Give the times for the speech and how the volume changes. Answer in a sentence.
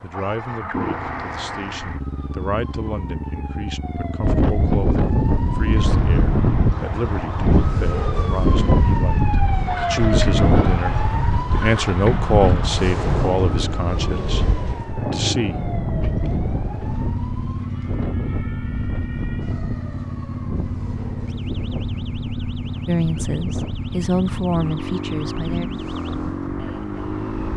The speech can be heard from 0.0 to 15.7 s, getting louder; and briefly from 22.9 to 25.7 s.